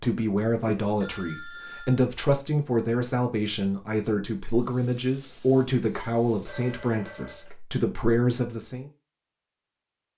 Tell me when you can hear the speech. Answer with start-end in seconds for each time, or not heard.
0.0-8.9.